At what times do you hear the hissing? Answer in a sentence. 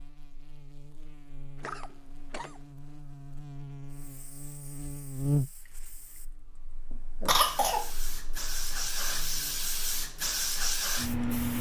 The hissing can be heard from 3.9 to 11.5 s.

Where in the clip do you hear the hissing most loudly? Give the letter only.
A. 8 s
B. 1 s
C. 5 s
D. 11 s
D.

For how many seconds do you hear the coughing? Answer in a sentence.
The coughing can be heard for 2 seconds in total.